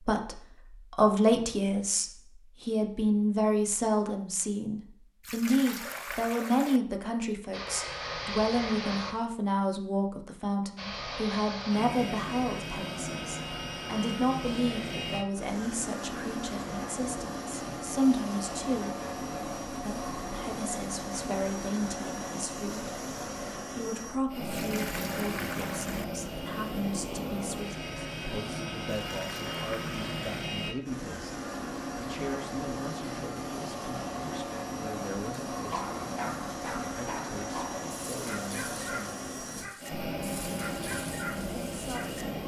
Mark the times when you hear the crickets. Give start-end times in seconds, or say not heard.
not heard.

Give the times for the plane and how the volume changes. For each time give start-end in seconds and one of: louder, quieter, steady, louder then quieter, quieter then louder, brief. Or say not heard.
7.5-9.2 brief
10.8-42.4 steady.